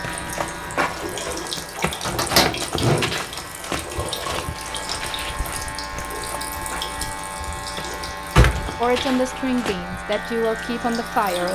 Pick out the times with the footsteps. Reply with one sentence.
The footsteps can be heard from 0.0 to 9.8 s.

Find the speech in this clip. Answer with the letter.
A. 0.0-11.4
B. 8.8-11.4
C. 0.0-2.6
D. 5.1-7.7
B.